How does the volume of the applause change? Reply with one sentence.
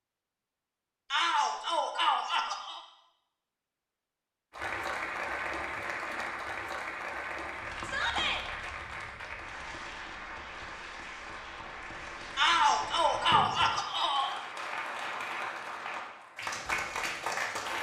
The volume of the applause goes down, then up.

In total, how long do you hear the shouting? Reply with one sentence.
The shouting can be heard for 4 seconds in total.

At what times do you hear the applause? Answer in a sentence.
The applause can be heard from 4.5 to 17.7 s.